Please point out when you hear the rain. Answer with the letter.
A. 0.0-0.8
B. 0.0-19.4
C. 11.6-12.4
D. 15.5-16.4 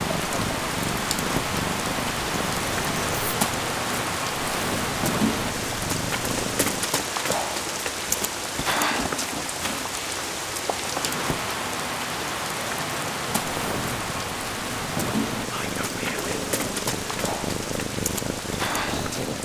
B.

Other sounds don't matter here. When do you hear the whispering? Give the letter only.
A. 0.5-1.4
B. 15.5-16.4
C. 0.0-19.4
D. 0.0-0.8
B.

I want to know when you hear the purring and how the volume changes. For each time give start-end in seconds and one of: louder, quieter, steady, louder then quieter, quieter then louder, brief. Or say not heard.
0.0-7.0 steady
13.3-19.4 louder.